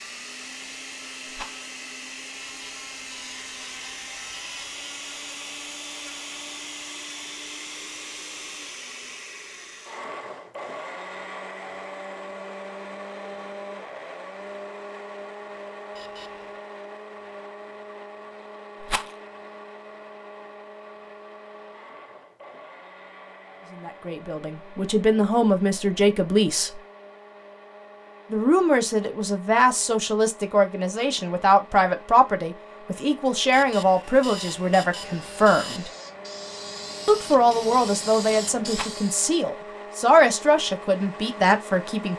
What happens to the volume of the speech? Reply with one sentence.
The loudness of the speech stays about the same.